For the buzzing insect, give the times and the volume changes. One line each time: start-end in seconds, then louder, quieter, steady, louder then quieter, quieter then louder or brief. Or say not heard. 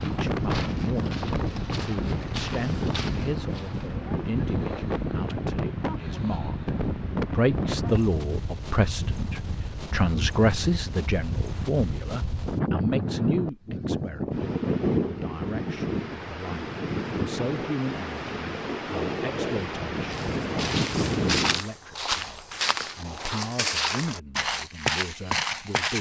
not heard.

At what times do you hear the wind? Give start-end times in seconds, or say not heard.
0.0-21.6.